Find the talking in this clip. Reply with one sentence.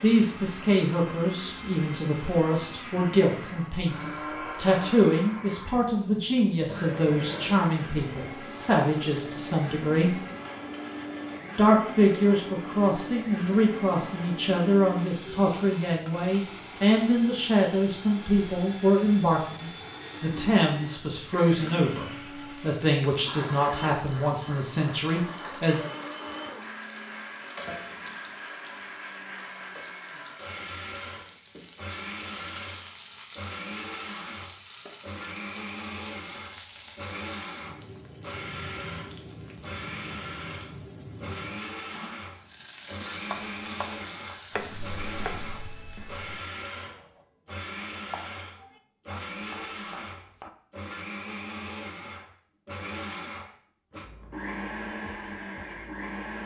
The talking can be heard from 0.0 to 10.2 s and from 11.6 to 25.8 s.